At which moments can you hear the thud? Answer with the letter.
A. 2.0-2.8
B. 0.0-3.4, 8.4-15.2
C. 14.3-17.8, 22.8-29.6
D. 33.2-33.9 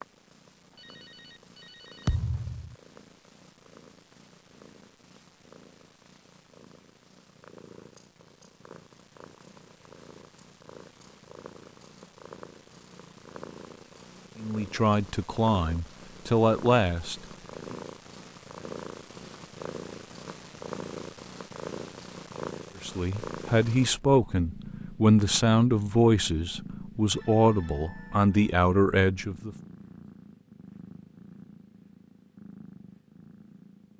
A.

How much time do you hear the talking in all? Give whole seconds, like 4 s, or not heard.
10 s.